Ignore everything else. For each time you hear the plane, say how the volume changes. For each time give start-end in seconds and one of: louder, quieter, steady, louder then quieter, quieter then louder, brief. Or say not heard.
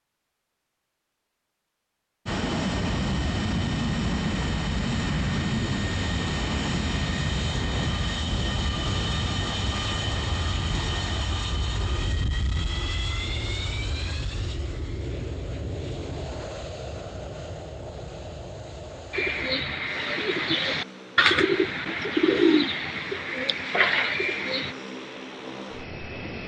2.2-26.4 quieter.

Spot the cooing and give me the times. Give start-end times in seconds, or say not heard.
19.1-24.8.